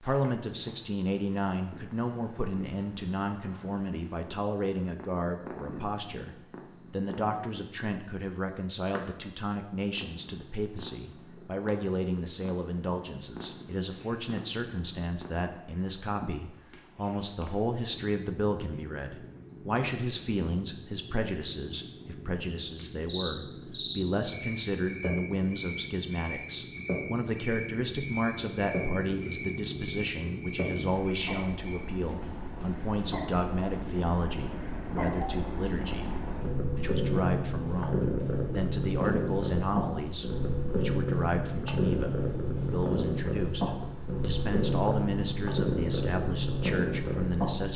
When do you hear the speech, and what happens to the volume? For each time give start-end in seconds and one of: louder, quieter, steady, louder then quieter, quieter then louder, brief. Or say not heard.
0.0-47.7 steady.